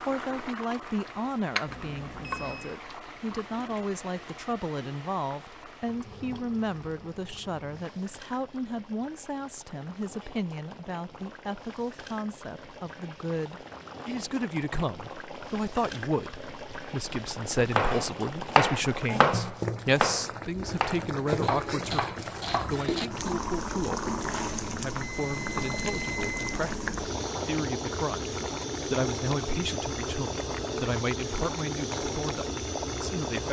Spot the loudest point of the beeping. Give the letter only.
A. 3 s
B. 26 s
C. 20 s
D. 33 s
B.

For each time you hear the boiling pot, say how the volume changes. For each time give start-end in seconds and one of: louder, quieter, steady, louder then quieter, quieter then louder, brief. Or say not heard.
0.0-33.4 quieter then louder.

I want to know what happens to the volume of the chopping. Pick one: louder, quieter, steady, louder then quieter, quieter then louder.
quieter.